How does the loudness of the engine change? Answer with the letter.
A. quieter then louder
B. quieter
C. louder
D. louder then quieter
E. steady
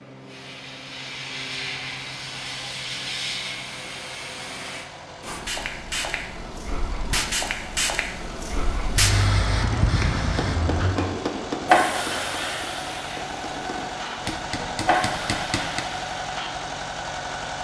C.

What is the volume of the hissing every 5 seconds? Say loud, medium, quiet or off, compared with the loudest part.
medium, loud, loud, medium.